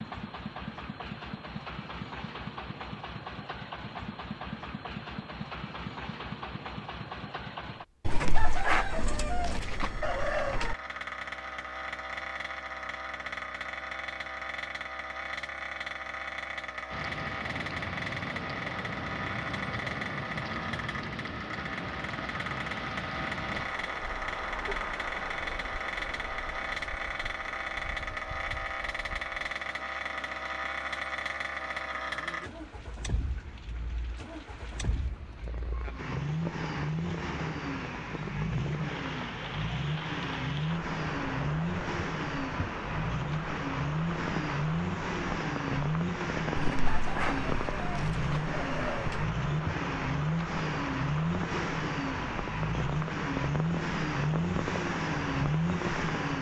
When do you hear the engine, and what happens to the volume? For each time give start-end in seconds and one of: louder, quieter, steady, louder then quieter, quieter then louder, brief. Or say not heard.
0.0-56.3 louder.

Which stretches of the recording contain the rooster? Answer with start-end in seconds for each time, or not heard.
8.1-10.8, 46.5-49.2.